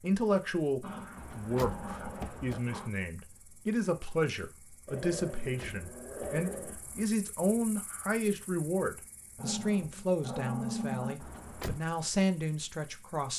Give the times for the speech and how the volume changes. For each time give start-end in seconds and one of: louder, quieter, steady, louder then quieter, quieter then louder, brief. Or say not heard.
0.0-13.3 steady.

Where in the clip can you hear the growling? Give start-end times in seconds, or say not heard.
0.8-2.9, 4.8-6.8, 9.3-11.2.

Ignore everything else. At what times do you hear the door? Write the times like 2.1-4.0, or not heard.
1.1-2.6, 5.4-7.1, 11.2-11.8.